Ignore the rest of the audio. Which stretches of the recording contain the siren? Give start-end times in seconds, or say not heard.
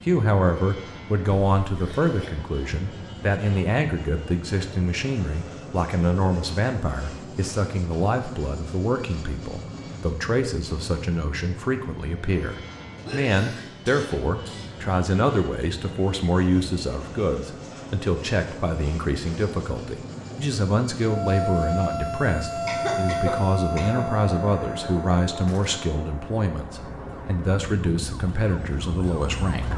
21.0-29.7.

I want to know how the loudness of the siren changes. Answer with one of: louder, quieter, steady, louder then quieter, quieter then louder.
quieter then louder.